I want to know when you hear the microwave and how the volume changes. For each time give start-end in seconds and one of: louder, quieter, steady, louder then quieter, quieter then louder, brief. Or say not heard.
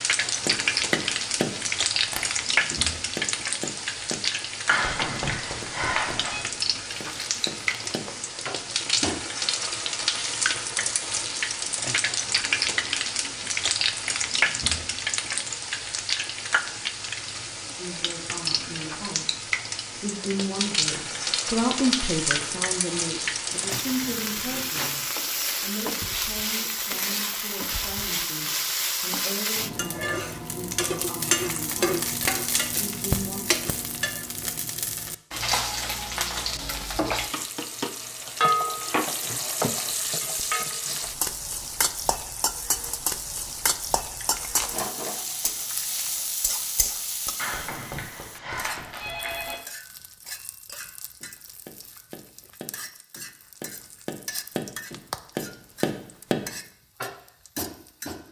not heard.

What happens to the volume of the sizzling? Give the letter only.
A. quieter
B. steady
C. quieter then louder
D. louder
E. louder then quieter
A.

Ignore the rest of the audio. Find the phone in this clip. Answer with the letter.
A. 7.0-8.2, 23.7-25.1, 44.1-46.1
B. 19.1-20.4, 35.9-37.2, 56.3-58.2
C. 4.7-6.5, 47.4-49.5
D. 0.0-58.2
C.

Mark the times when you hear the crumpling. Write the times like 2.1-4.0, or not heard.
7.0-8.2, 23.7-25.1, 44.1-46.1.